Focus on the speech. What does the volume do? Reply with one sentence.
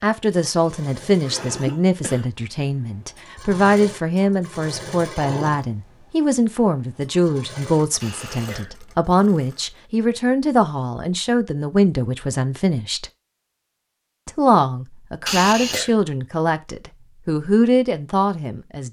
The volume of the speech stays about the same.